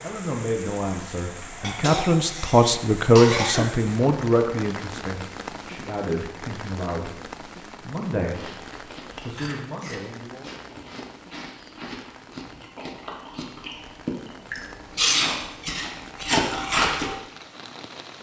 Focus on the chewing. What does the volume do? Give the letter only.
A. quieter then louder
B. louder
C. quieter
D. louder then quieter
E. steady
B.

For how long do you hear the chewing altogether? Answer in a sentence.
The chewing can be heard for 9 seconds in total.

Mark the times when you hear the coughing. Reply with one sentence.
The coughing can be heard from 1.6 to 3.6 s.